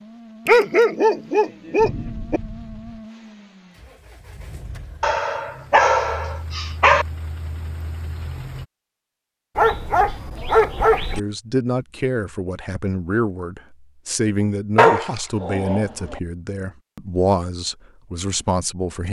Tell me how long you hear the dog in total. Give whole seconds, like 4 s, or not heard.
7 s.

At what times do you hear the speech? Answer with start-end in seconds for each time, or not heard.
11.1-19.0.